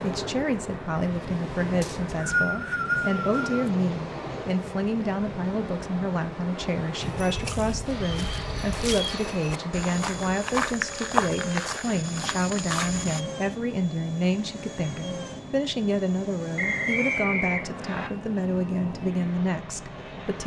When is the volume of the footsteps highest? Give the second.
11 s.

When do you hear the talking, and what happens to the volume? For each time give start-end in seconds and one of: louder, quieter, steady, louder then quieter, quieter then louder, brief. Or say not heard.
0.0-20.4 steady.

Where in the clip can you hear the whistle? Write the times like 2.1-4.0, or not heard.
1.8-3.7, 8.0-8.9, 16.6-18.1.